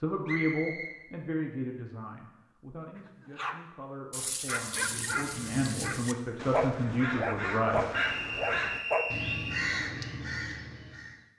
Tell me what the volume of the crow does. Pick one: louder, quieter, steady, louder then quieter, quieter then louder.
louder.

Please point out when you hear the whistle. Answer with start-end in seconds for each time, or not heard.
0.2-0.9, 7.9-9.7.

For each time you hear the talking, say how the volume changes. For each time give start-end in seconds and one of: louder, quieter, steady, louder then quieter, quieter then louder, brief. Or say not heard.
0.0-7.8 quieter then louder.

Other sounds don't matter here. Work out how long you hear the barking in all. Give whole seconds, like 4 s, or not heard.
6 s.